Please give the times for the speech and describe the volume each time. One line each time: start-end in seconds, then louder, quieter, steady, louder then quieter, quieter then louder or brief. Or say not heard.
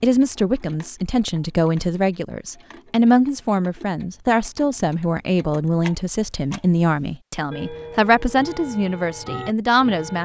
0.0-10.2 steady.